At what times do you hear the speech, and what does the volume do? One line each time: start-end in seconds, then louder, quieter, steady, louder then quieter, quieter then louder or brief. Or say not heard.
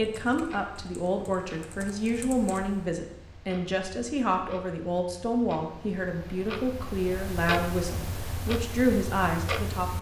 0.0-9.9 steady.